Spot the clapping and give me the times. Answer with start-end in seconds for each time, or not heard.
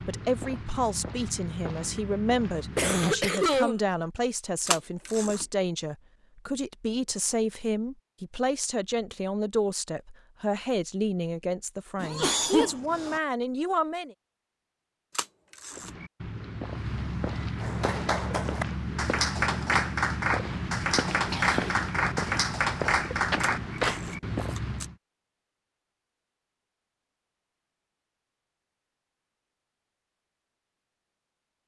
17.6-24.0.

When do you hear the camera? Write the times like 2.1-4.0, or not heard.
4.7-5.5, 15.2-15.9, 23.4-24.9.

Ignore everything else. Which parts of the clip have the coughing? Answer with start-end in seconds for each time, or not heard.
2.8-3.8, 12.0-13.2, 21.3-21.8.